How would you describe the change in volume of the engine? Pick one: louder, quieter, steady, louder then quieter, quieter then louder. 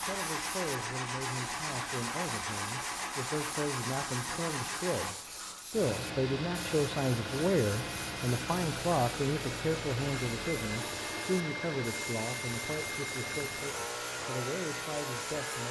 steady.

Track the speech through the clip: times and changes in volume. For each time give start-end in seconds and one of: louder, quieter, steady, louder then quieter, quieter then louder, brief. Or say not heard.
0.0-15.6 louder then quieter.